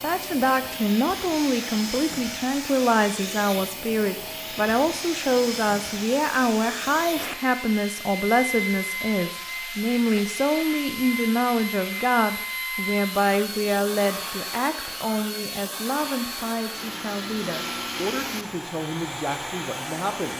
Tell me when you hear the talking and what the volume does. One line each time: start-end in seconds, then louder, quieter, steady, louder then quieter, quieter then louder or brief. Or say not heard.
0.0-20.3 quieter.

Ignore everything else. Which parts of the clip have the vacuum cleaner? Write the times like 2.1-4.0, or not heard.
0.0-20.3.